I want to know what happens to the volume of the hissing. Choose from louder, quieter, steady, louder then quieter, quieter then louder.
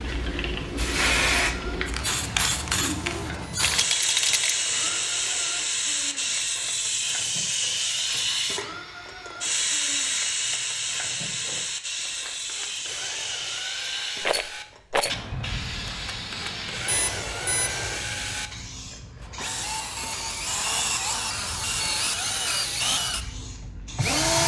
quieter.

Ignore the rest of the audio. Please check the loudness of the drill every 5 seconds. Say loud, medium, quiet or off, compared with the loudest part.
quiet, quiet, quiet, medium, loud.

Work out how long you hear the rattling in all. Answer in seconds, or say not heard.
2 s.